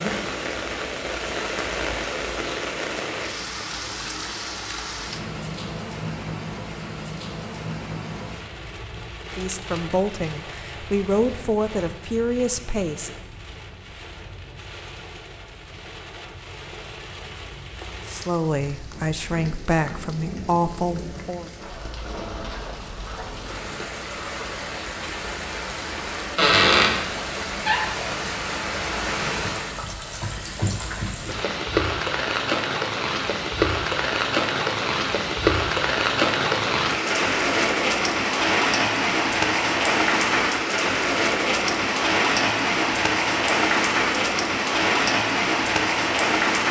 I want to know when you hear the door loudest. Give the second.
27 s.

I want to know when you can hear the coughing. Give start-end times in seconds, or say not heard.
not heard.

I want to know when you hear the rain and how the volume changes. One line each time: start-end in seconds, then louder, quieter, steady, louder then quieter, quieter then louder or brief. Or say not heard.
0.0-46.6 quieter then louder.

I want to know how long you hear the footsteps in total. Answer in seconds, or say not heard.
not heard.